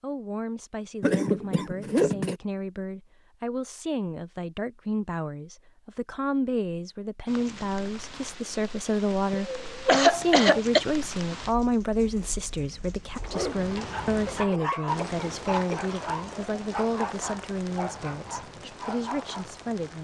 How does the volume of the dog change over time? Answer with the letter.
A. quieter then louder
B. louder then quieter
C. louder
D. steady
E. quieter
B.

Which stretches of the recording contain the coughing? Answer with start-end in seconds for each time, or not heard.
1.0-2.4, 9.3-10.8, 14.2-15.8.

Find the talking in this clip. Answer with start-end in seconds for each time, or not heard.
0.0-20.0.